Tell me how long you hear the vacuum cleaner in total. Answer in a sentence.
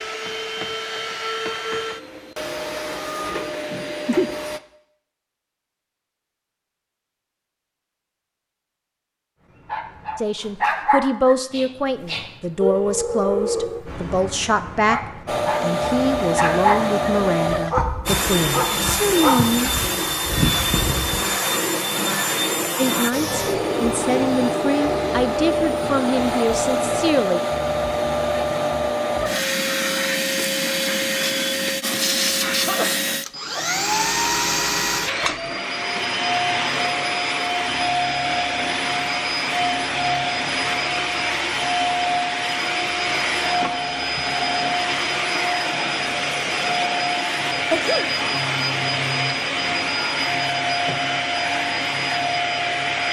The vacuum cleaner can be heard for 42 seconds in total.